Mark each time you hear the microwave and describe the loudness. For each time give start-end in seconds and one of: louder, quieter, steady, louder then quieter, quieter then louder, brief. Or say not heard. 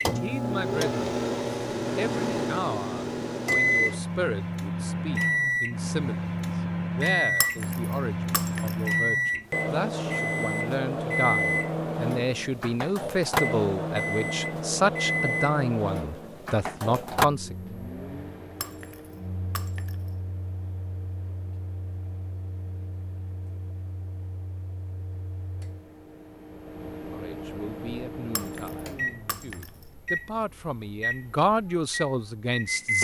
0.0-32.9 quieter then louder.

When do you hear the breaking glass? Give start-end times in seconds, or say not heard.
7.4-8.8, 18.6-19.9, 28.4-29.7.